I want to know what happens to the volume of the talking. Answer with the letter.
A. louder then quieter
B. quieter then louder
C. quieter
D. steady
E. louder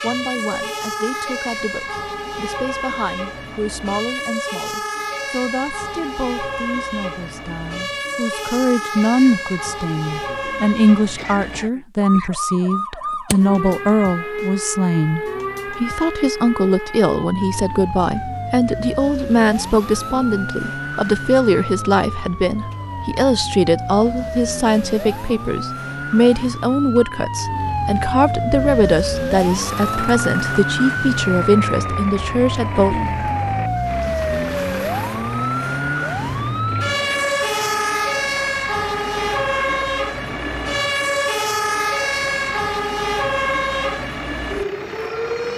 E.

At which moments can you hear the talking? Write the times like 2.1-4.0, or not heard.
0.0-33.0.